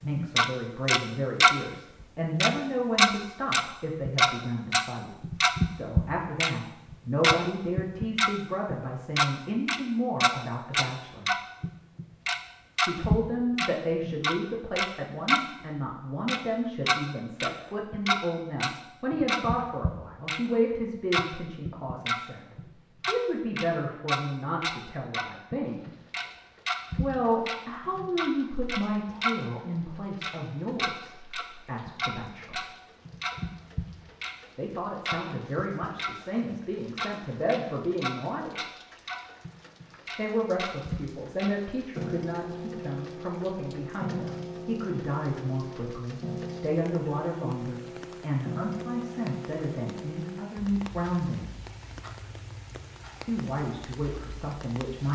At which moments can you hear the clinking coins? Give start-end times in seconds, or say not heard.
not heard.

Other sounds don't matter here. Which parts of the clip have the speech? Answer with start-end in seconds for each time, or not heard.
0.0-11.3, 12.8-25.9, 26.9-32.6, 34.5-38.5, 40.1-51.5, 53.2-55.1.